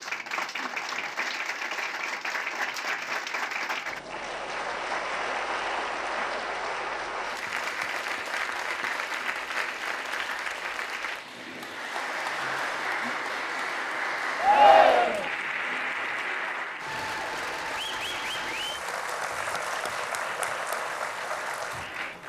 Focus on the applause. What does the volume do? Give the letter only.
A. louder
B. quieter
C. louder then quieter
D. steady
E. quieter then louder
D.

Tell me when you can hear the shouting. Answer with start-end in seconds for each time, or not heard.
14.4-15.3.